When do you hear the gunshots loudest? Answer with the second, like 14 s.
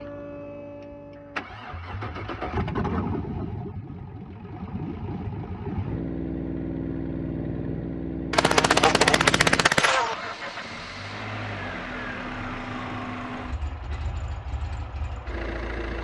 9 s.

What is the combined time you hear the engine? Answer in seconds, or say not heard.
16 s.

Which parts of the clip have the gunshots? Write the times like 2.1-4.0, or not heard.
8.3-10.2.